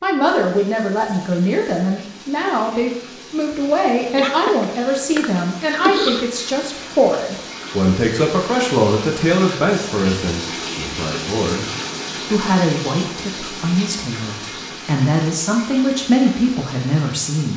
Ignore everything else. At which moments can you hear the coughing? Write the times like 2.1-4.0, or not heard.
4.2-6.2.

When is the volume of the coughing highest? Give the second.
6 s.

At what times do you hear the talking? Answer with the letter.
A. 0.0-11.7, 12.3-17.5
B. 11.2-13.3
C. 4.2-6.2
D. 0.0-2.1
A.